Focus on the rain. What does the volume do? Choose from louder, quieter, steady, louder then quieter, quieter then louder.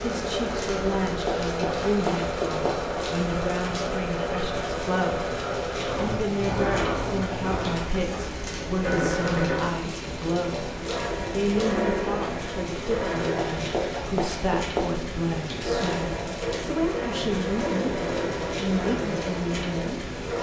steady.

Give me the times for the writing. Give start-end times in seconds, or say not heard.
1.2-2.9, 13.3-14.9.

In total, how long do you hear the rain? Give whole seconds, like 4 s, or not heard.
20 s.